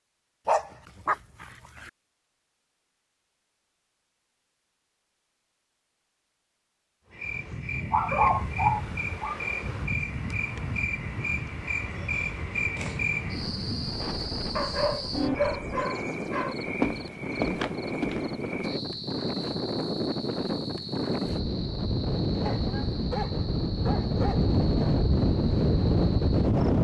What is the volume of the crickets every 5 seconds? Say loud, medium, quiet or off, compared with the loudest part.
off, loud, loud, loud, medium, quiet.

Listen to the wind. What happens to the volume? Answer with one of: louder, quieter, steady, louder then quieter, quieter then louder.
louder.